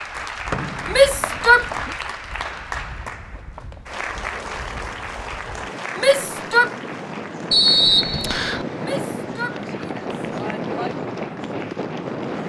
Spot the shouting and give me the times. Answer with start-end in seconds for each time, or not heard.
0.9-1.9, 6.0-6.7, 8.8-10.9.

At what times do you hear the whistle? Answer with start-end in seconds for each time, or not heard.
0.5-1.9, 7.5-8.7.